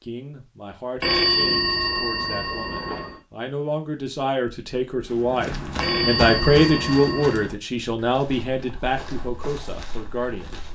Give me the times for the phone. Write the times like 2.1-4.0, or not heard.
1.0-3.2, 5.8-7.5.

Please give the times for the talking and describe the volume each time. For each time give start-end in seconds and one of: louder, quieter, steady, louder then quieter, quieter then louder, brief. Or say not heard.
0.0-10.7 louder then quieter.